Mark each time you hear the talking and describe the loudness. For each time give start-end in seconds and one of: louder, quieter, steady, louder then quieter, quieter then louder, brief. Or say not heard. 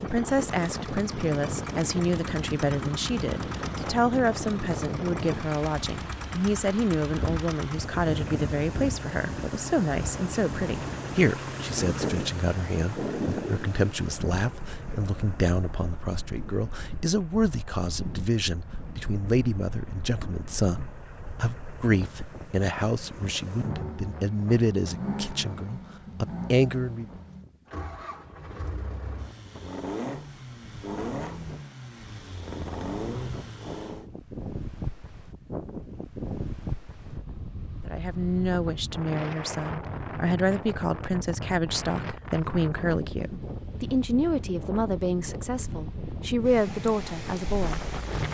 0.0-27.1 steady
37.9-47.9 steady.